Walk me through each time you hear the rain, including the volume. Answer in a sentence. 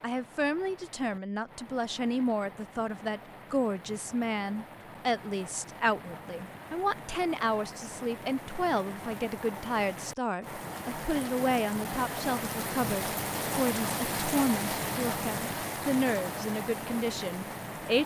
The rain can be heard from 0.0 to 18.0 s, getting louder.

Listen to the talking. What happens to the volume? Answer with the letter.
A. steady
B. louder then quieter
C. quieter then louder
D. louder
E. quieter
A.